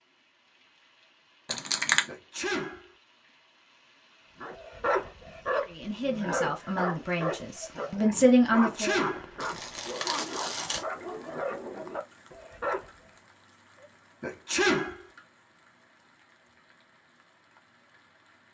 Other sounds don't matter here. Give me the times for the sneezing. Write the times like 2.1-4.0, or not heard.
2.0-2.9, 8.5-9.3, 14.2-15.1.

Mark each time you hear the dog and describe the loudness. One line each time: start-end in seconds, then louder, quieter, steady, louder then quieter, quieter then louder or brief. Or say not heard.
4.4-12.9 quieter.